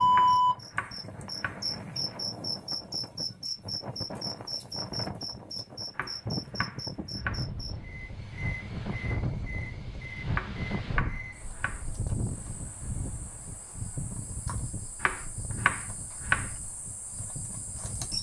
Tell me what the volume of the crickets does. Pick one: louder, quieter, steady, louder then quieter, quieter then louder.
quieter.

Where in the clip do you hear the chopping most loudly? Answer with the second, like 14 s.
16 s.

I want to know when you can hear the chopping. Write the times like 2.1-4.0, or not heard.
0.1-1.6, 6.0-7.5, 10.3-11.8, 15.0-16.5.